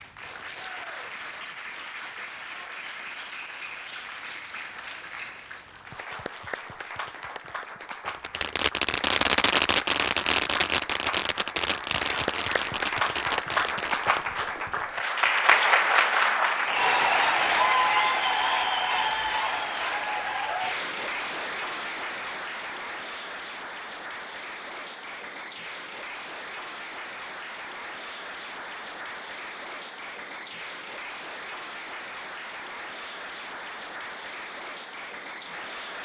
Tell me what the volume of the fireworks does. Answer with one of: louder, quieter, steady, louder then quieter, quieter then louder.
quieter.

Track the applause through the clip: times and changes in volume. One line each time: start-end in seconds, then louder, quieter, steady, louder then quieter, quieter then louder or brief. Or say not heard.
0.0-36.0 louder then quieter.